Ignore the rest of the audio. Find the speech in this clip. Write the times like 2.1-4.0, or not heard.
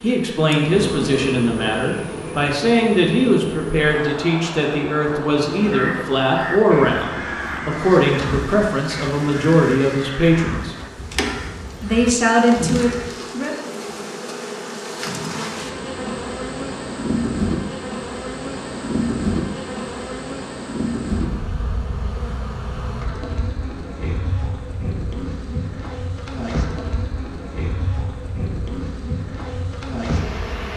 0.0-10.8, 11.8-13.6.